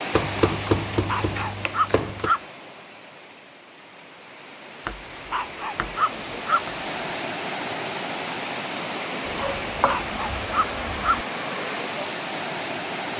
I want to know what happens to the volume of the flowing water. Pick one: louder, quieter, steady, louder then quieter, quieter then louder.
quieter then louder.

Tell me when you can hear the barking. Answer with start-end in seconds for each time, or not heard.
1.1-2.4, 5.3-6.6, 9.8-11.2.